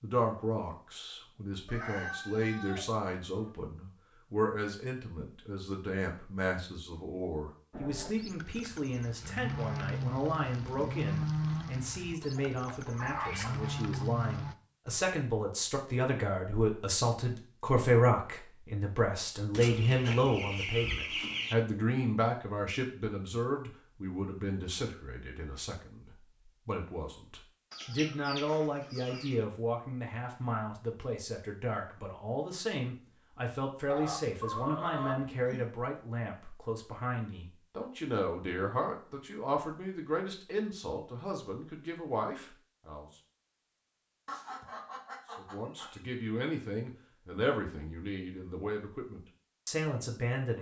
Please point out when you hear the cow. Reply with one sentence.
You can hear the cow from 7.7 to 14.6 s.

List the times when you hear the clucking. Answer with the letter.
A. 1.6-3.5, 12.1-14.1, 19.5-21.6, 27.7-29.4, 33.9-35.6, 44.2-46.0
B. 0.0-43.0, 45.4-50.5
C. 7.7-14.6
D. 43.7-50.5
A.